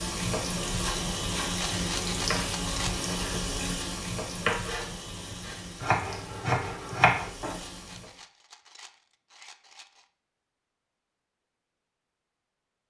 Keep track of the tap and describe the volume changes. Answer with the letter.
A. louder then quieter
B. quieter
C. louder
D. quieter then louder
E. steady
B.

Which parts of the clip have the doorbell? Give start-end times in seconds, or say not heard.
not heard.